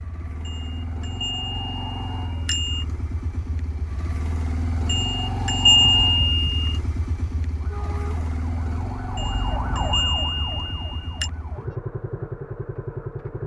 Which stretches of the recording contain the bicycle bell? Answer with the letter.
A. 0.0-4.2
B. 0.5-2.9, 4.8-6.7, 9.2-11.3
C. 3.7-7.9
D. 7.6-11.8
B.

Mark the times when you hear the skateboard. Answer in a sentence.
The skateboard can't be heard in this clip.